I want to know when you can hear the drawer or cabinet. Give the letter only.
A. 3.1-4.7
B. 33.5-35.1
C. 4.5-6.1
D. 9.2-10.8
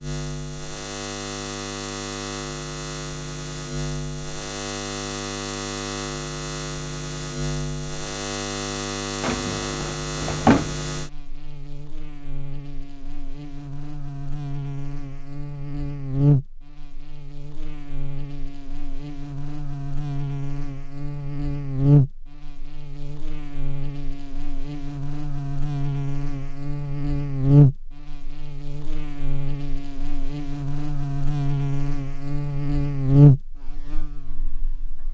D.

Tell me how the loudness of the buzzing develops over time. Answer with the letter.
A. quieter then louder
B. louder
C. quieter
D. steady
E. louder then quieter
B.